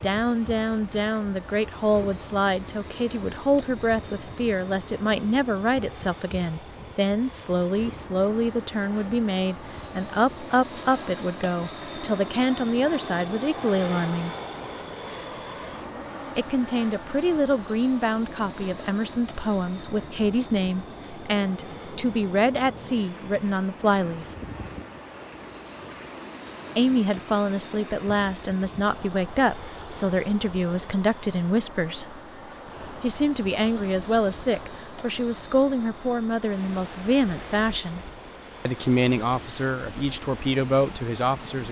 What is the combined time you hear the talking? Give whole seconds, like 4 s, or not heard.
36 s.